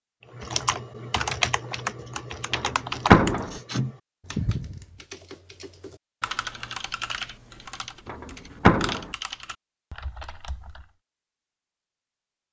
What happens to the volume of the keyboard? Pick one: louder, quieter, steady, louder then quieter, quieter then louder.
quieter.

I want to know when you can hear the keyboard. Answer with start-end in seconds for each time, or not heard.
0.3-10.9.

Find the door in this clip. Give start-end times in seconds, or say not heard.
2.5-3.5, 8.1-9.1.